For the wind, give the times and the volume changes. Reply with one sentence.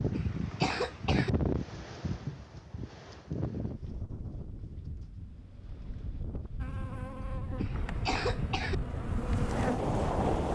The wind can be heard from 0.0 to 10.5 s, getting quieter then louder.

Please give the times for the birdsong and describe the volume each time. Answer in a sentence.
The birdsong can't be heard in this clip.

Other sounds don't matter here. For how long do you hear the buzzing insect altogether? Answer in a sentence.
You can hear the buzzing insect for 4 seconds altogether.